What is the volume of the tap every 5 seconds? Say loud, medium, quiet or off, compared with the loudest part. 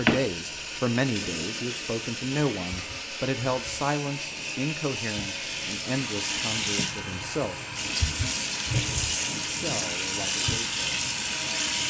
medium, loud, loud.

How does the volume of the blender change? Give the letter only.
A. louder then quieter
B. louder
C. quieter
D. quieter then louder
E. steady
E.